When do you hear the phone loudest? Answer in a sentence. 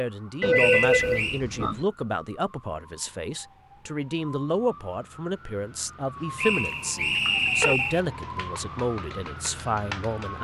The volume of the phone peaks at 1 second.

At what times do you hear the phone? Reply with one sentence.
The phone can be heard from 0.4 to 1.9 s and from 6.7 to 7.8 s.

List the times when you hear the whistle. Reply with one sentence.
The whistle can be heard from 0.6 to 1.4 s and from 6.3 to 8.0 s.